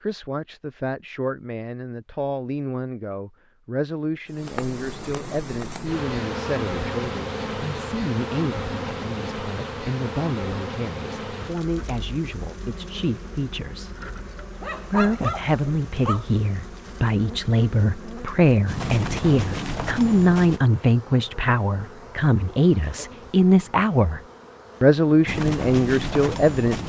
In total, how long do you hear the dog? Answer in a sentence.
The dog can be heard for 2 seconds in total.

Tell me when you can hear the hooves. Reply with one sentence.
You can hear the hooves from 18.6 to 20.6 s and from 25.2 to 26.8 s.